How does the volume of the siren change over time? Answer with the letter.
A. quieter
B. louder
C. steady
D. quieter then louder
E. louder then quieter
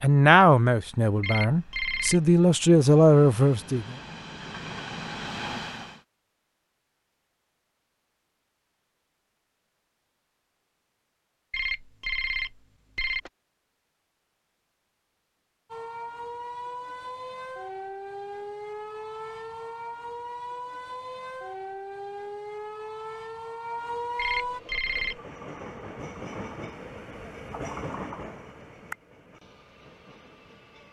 C.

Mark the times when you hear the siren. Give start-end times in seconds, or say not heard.
15.7-24.6.